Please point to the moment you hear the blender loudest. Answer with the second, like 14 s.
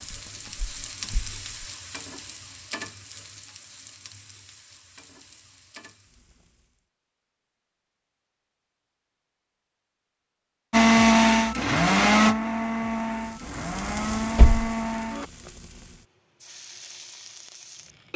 11 s.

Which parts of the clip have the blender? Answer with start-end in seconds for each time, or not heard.
10.7-15.3.